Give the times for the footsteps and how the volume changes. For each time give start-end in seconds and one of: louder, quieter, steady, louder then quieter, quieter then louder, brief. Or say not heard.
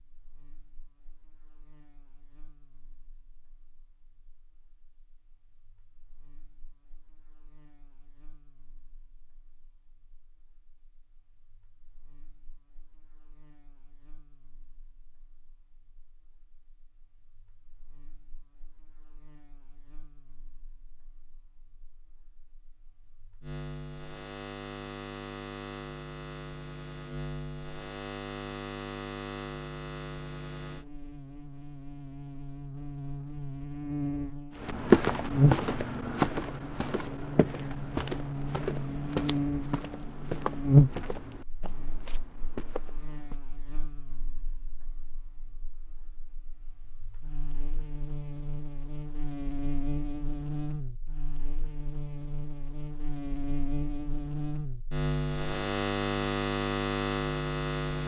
34.6-43.4 quieter.